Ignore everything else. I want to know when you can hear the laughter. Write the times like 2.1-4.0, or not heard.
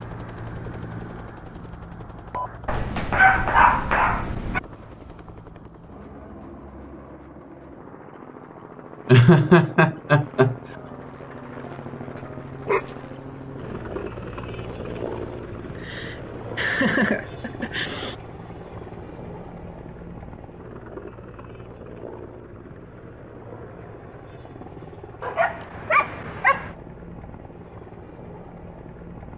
9.1-10.6, 15.8-18.1.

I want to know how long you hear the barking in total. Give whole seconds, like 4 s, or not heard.
5 s.